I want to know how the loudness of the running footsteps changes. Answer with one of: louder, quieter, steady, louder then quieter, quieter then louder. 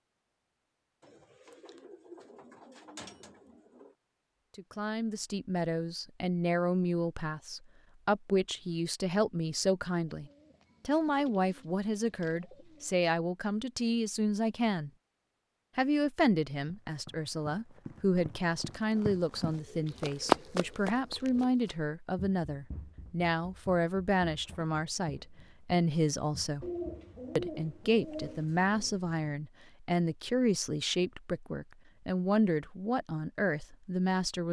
louder then quieter.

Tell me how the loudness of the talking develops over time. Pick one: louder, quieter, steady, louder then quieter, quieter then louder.
steady.